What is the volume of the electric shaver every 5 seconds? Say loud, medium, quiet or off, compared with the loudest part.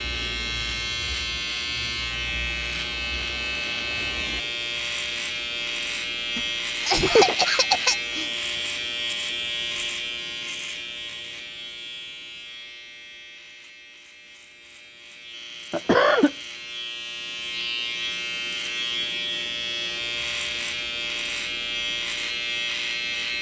loud, loud, medium, loud, loud.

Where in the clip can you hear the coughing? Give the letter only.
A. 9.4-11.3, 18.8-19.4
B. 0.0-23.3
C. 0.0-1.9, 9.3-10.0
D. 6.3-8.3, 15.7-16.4
D.